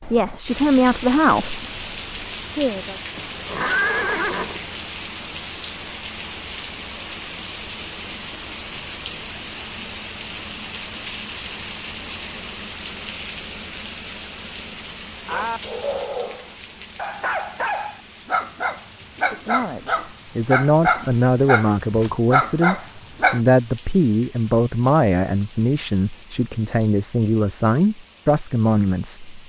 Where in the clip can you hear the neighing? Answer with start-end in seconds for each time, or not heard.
3.1-4.7.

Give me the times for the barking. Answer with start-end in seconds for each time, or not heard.
15.2-23.4.